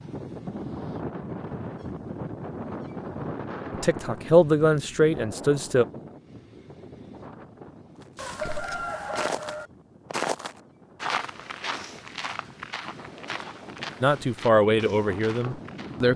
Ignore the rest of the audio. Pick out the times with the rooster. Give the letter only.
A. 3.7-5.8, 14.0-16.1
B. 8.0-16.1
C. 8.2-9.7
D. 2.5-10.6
C.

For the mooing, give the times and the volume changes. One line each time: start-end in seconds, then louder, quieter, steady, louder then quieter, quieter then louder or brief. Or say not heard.
not heard.